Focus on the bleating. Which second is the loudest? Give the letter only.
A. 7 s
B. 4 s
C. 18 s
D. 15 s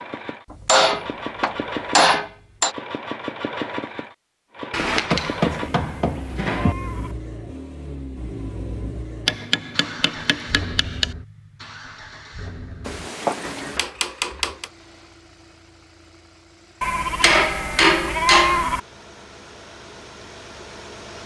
C.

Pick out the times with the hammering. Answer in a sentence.
The hammering can be heard from 0.5 to 2.8 s, from 4.7 to 6.8 s, from 9.2 to 11.1 s, from 12.8 to 14.7 s and from 17.2 to 18.6 s.